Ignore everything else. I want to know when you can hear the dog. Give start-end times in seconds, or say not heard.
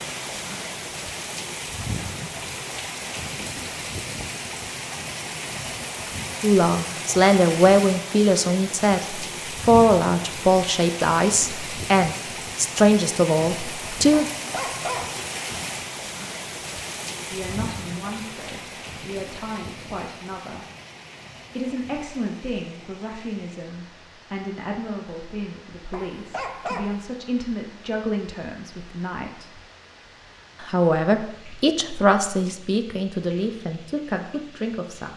14.3-15.2, 25.9-27.1.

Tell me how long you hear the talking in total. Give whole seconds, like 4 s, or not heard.
24 s.